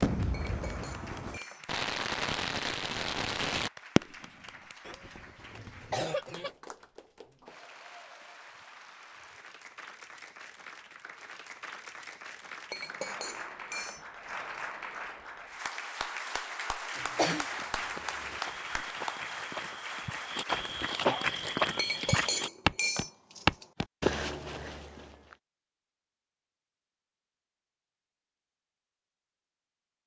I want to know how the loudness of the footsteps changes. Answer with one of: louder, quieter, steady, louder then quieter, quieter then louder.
louder then quieter.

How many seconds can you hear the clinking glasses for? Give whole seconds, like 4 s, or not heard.
5 s.